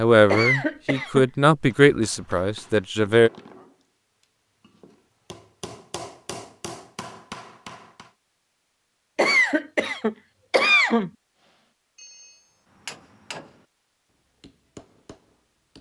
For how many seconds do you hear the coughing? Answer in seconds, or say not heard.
3 s.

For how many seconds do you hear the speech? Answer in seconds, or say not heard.
3 s.